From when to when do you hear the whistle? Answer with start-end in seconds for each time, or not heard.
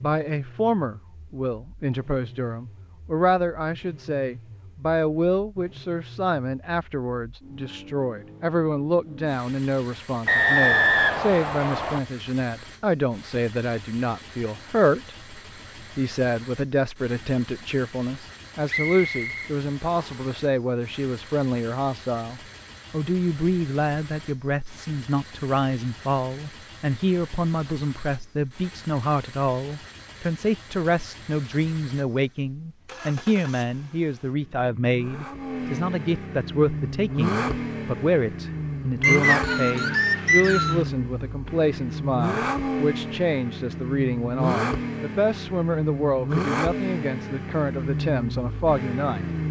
10.2-12.0, 18.6-20.2, 39.0-40.9.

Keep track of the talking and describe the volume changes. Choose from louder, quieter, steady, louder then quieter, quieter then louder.
steady.